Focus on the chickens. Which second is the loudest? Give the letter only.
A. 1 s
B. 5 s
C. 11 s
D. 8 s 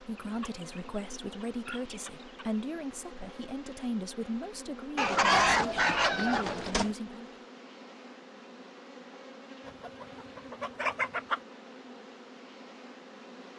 B.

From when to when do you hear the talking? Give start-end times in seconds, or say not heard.
0.0-7.3.